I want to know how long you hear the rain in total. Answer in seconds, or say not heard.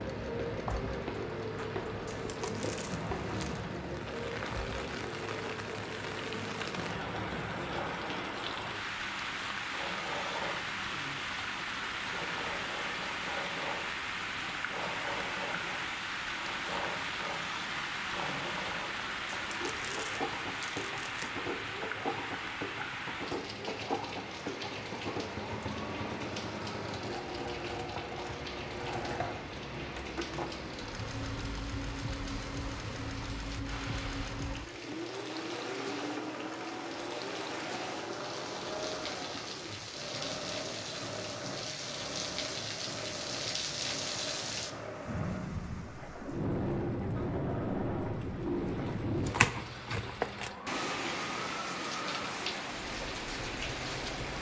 54 s.